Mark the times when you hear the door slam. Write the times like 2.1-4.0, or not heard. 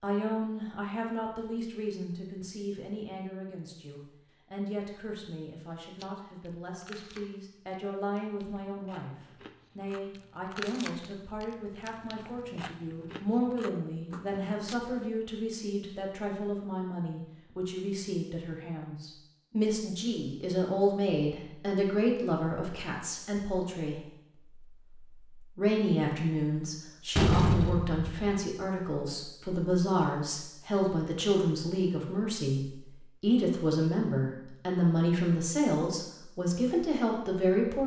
27.1-28.4.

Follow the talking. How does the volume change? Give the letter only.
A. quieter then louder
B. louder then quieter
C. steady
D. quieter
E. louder
E.